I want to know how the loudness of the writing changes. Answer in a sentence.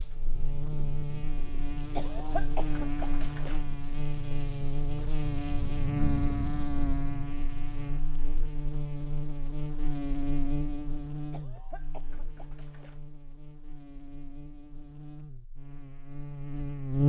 The loudness of the writing goes up.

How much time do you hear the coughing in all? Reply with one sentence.
The coughing can be heard for 3 seconds in total.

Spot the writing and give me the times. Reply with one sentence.
You can hear the writing from 0.2 to 8.0 s.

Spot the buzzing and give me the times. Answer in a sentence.
The buzzing can be heard from 0.0 to 17.0 s.